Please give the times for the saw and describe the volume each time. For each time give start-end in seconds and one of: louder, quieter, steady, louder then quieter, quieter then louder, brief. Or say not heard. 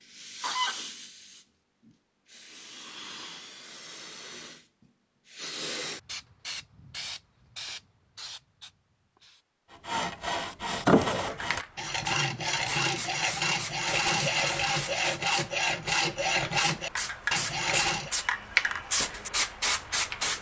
9.7-18.1 steady.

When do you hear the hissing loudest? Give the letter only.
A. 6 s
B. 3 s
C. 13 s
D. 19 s
D.